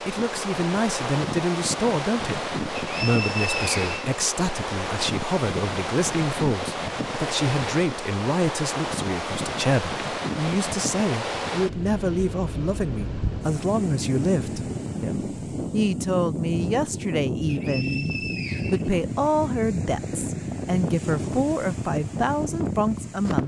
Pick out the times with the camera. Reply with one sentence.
You can't hear the camera here.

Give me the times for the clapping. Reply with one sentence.
You can't hear the clapping here.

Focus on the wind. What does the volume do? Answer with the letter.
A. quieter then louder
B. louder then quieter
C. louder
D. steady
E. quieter
D.